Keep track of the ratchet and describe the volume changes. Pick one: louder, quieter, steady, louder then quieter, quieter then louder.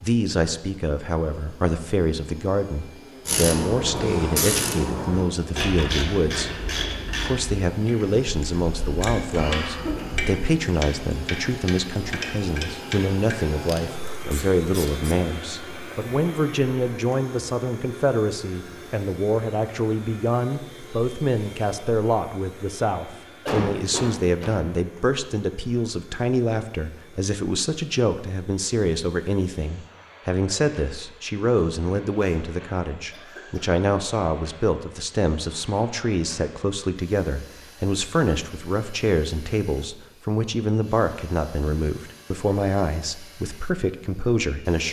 quieter.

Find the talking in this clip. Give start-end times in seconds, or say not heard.
0.0-6.7, 7.2-44.8.